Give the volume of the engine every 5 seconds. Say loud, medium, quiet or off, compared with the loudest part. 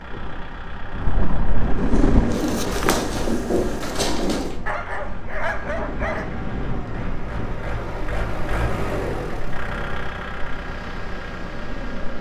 medium, loud, loud.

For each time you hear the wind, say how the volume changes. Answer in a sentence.
The wind can be heard from 0.0 to 12.1 s, getting quieter.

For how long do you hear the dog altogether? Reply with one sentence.
You can hear the dog for 2 seconds altogether.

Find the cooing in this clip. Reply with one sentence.
You can hear the cooing from 1.8 to 4.6 s.